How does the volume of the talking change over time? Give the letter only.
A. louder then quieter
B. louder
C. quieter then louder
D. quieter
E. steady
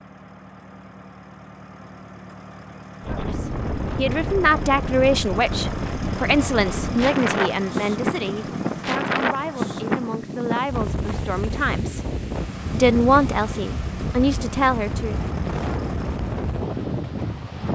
C.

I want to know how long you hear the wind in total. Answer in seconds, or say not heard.
15 s.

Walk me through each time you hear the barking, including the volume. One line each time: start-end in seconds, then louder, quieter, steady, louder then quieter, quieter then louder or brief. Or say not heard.
not heard.